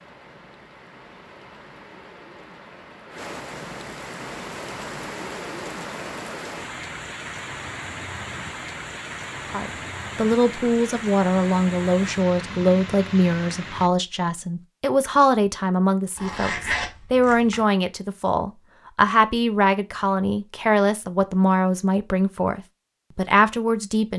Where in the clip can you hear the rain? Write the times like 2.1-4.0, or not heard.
0.0-13.9.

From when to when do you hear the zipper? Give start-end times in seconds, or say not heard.
16.1-17.6.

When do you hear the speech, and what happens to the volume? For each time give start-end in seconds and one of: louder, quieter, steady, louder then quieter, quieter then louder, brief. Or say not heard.
9.5-24.1 steady.